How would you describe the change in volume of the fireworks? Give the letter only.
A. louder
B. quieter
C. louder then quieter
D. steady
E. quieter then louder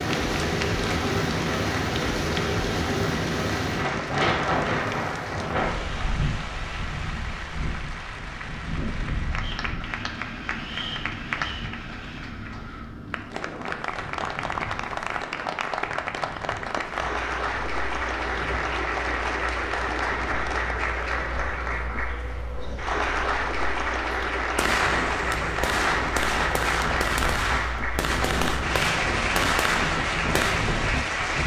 D.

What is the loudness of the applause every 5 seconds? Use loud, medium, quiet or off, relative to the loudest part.
medium, medium, medium, loud, loud, loud, loud.